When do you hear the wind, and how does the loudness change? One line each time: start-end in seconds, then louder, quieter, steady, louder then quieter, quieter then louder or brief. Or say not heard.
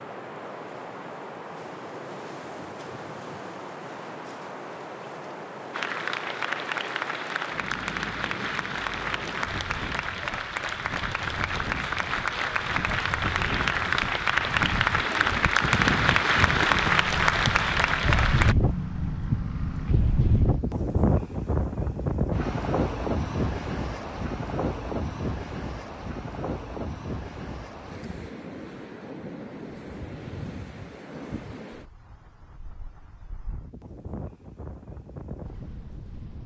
0.0-36.4 louder then quieter.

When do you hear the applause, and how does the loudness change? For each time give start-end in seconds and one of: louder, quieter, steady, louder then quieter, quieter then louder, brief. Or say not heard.
5.7-18.6 louder.